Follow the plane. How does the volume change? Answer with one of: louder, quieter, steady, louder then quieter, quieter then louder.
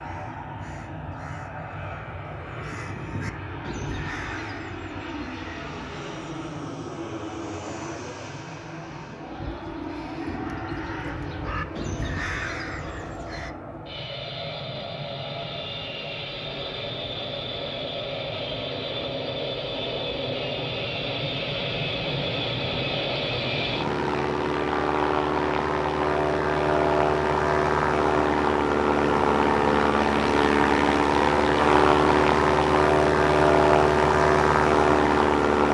louder.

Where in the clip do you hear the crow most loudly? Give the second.
12 s.